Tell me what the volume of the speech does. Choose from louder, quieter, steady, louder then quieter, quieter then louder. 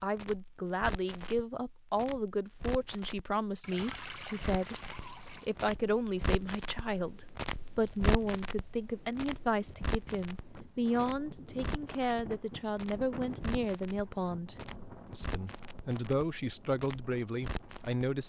steady.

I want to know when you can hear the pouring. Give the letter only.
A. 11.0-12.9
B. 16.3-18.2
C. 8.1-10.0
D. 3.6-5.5
D.